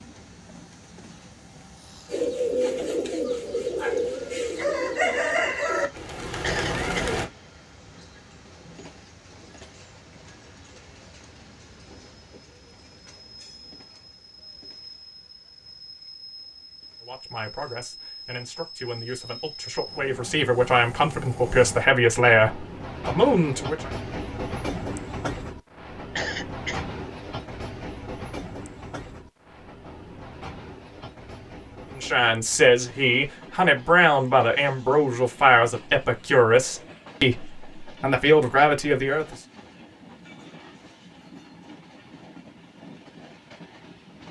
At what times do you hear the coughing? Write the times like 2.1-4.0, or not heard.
6.4-7.2, 26.1-26.9.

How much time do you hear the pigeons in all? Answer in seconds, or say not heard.
5 s.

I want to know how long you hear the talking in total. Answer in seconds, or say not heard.
14 s.